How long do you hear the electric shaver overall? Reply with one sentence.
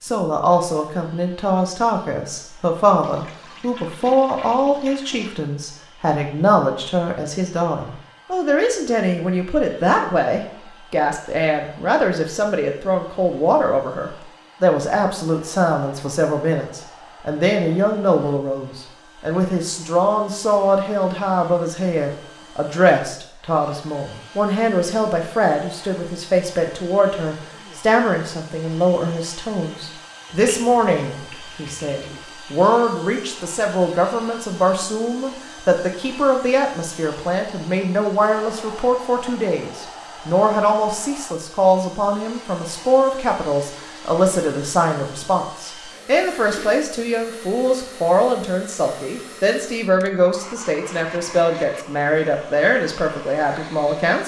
You can't hear the electric shaver here.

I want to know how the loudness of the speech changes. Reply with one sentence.
The volume of the speech stays about the same.